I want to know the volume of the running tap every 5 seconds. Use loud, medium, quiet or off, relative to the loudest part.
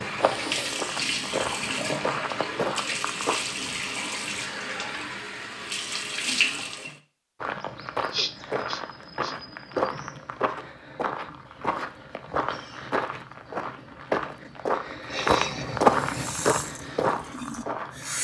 loud, loud, off, medium.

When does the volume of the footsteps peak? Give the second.
16 s.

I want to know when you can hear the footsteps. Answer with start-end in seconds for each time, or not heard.
0.0-3.7, 7.4-18.2.